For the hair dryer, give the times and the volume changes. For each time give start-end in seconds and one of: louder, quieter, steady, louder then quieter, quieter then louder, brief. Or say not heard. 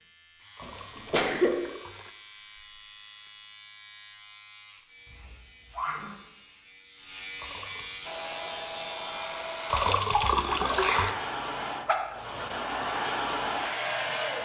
8.1-14.4 louder.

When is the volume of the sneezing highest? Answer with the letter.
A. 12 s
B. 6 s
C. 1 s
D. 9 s
C.